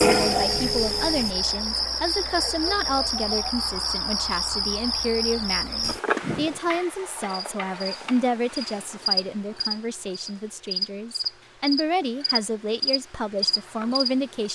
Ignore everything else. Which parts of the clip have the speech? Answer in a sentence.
You can hear the speech from 0.0 to 14.5 s.